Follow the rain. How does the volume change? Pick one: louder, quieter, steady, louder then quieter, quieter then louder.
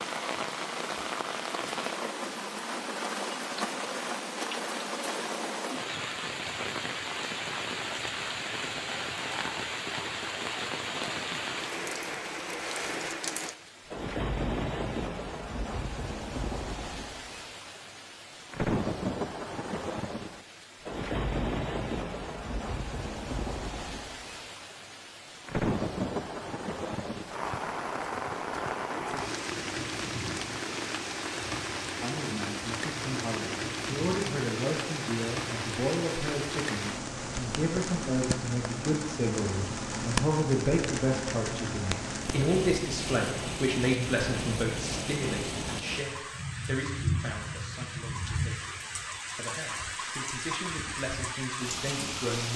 steady.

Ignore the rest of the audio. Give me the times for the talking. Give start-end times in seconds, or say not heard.
32.0-52.5.